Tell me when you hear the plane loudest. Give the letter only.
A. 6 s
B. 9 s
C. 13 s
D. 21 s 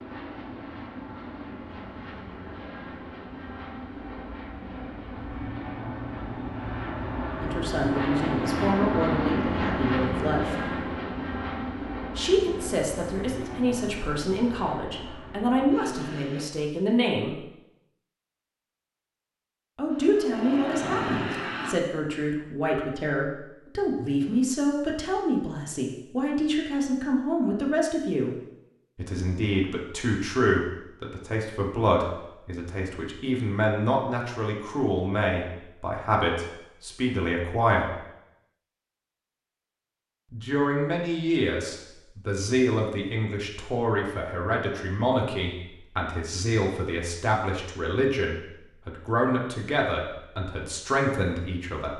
B.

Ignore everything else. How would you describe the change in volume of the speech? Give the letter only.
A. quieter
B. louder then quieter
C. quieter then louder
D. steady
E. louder
D.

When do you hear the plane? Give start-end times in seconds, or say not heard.
0.0-16.4, 19.9-21.8.